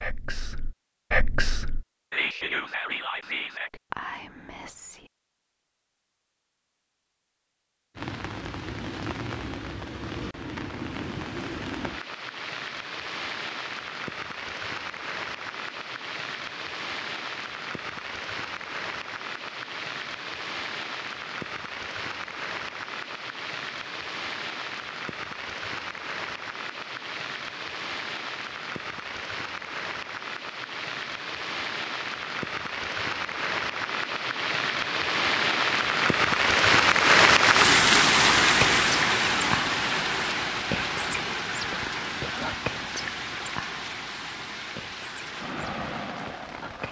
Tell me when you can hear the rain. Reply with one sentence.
You can hear the rain from 8.0 to 46.8 s.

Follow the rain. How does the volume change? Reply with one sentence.
The volume of the rain goes up, then down.